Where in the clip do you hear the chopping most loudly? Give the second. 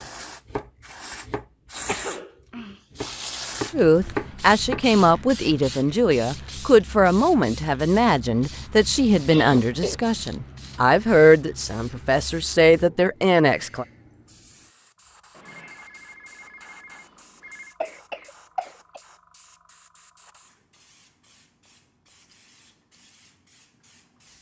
4 s.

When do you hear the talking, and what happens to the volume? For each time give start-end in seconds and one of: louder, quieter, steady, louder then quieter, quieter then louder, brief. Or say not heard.
3.7-13.8 steady.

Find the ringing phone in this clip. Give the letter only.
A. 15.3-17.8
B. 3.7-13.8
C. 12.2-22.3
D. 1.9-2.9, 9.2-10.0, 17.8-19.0
A.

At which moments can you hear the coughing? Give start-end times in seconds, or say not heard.
1.9-2.9, 9.2-10.0, 17.8-19.0.